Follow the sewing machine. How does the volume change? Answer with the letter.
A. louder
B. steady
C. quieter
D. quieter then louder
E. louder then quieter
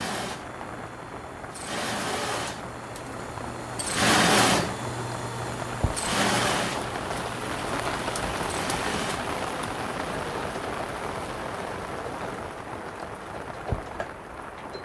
E.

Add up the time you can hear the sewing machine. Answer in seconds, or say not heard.
15 s.